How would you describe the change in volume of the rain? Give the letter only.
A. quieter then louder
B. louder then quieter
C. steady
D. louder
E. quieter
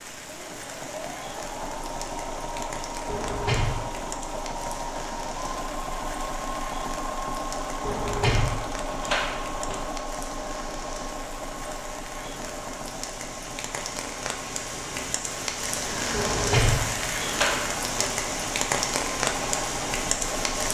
D.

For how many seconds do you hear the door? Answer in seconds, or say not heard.
5 s.